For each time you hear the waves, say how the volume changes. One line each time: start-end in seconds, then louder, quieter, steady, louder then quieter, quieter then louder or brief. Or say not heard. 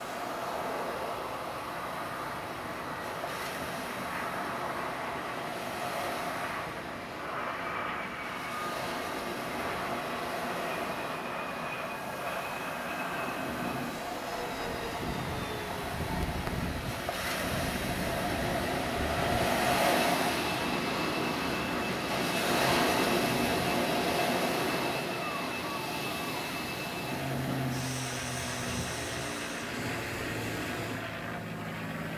0.0-32.1 louder then quieter.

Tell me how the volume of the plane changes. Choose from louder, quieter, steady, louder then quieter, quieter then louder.
steady.